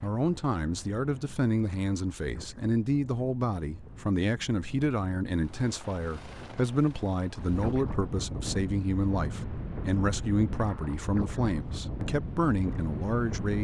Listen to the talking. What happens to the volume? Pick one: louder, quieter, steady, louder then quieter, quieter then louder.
steady.